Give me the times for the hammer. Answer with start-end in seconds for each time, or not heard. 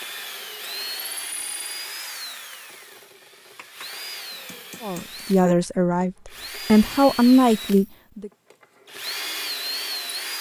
3.5-5.2.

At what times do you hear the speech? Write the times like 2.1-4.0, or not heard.
4.8-8.3.